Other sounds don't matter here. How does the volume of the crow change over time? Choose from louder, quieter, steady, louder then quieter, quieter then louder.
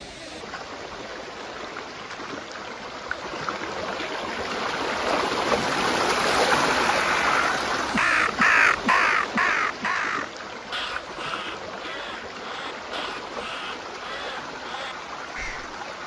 louder then quieter.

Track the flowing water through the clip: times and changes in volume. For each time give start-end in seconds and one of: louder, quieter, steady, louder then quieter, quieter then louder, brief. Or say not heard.
0.0-16.0 louder then quieter.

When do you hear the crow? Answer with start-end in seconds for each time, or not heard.
5.5-15.8.